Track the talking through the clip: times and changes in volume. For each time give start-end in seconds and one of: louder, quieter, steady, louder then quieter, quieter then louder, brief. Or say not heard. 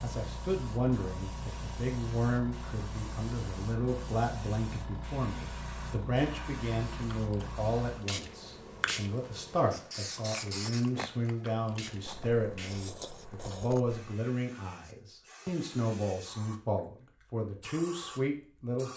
0.0-18.9 steady.